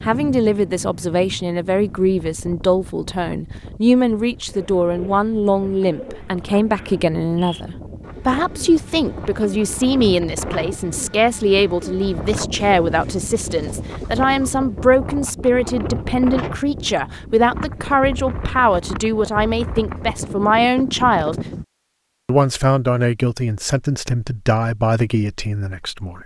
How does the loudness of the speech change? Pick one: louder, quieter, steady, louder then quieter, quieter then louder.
steady.